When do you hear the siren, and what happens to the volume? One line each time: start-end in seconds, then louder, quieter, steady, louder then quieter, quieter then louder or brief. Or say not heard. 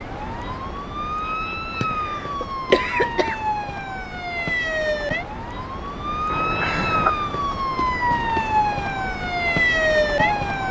0.0-10.6 louder.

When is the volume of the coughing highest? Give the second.
3 s.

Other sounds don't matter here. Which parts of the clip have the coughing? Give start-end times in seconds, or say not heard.
1.5-3.4, 6.2-7.3.